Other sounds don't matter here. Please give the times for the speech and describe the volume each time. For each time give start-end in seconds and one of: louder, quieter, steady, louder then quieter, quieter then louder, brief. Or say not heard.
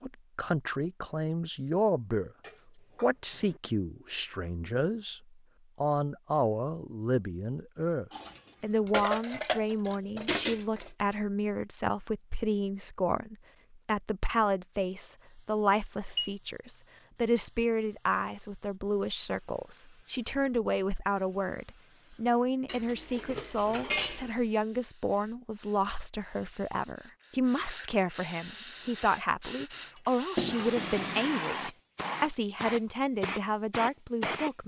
0.0-2.3 brief
3.0-5.2 brief
5.8-34.6 steady.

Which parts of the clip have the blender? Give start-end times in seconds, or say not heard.
not heard.